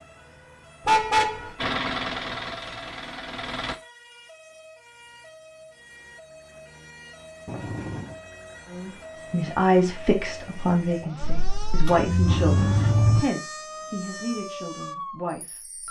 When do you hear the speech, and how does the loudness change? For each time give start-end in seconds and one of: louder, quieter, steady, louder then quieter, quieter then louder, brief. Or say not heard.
8.7-15.8 quieter.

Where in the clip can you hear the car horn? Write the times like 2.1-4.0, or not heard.
0.8-1.6, 7.5-8.2, 11.2-13.2.